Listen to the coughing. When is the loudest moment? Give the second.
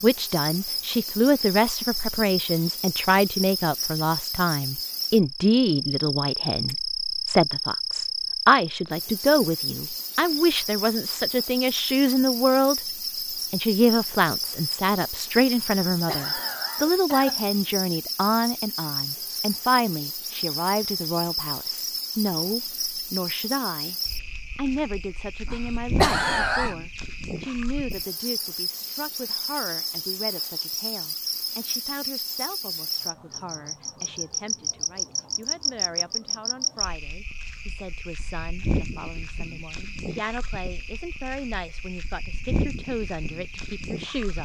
26 s.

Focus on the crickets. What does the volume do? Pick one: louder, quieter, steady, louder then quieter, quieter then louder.
steady.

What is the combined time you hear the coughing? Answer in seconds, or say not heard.
3 s.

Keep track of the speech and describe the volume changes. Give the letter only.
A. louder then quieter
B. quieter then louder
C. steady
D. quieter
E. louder
D.